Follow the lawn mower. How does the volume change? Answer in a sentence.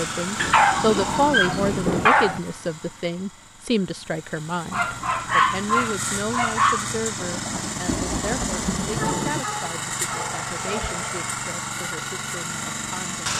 The volume of the lawn mower goes down, then up.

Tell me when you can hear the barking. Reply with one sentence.
The barking can be heard from 0.3 to 2.4 s, from 4.7 to 7.0 s and from 8.9 to 11.2 s.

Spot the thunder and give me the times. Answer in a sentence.
You can hear the thunder from 7.2 to 9.4 s.